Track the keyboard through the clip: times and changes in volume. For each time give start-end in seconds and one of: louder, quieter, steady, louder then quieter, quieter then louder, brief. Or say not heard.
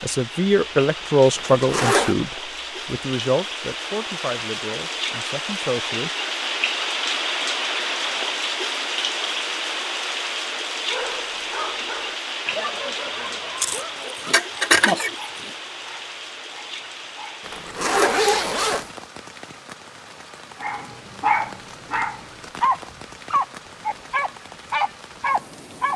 not heard.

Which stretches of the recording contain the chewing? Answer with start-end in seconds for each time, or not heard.
13.6-15.5.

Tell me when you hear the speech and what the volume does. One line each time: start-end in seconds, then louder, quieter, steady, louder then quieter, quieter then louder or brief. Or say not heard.
0.0-6.1 quieter.